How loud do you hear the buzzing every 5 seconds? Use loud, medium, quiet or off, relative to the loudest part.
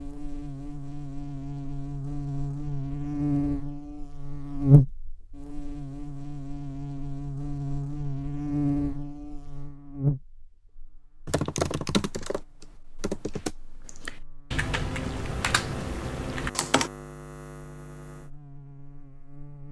loud, medium, medium, quiet.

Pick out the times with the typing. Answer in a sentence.
The typing can be heard from 11.2 to 16.9 s.